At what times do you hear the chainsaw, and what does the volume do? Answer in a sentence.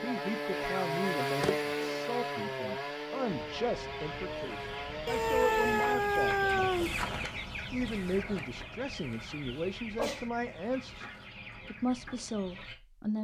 The chainsaw can be heard from 0.0 to 6.0 s, getting quieter.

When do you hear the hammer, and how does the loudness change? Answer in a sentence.
The hammer can't be heard in this clip.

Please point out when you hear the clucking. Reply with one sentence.
You can hear the clucking from 3.2 to 12.8 s.